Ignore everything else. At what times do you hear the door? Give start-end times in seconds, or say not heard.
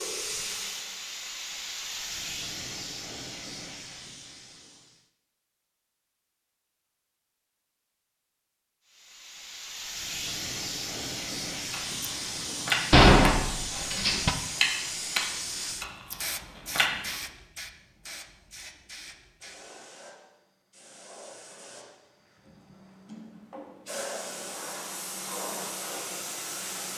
12.9-14.3.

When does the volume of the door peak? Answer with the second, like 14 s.
13 s.